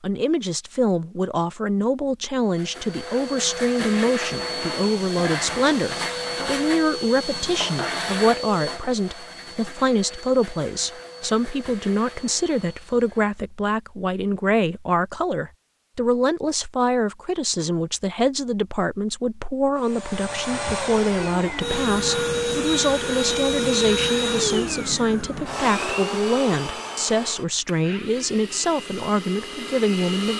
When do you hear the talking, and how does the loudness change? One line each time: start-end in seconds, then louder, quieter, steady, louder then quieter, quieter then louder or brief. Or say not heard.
0.0-30.3 steady.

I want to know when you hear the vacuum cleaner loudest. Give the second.
24 s.